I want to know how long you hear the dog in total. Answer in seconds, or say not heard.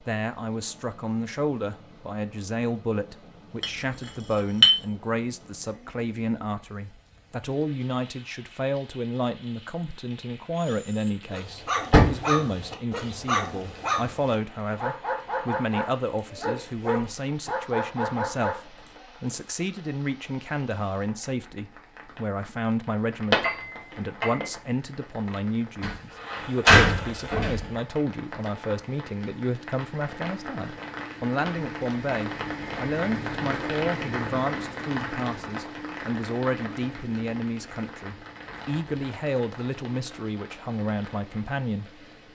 8 s.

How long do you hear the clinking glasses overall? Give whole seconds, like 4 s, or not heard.
2 s.